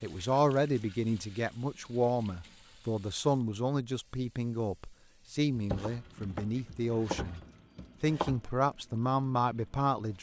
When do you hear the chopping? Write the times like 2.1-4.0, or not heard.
5.5-8.4.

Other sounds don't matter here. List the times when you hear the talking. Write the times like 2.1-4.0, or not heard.
0.0-7.4, 8.0-10.1.